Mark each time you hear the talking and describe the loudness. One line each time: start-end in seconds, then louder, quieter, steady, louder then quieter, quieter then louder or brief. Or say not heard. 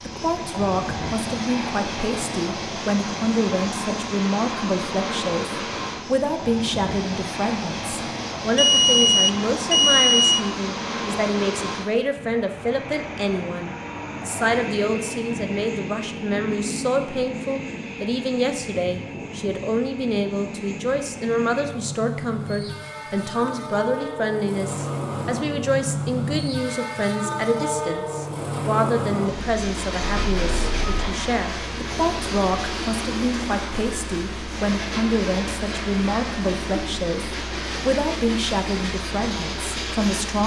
0.0-40.4 steady.